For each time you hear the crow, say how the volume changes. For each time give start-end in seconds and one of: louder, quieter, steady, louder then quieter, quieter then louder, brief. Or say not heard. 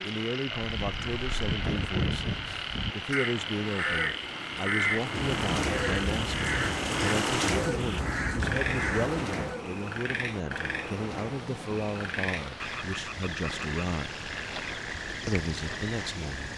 0.6-9.2 steady.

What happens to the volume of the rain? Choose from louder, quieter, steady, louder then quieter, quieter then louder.
louder then quieter.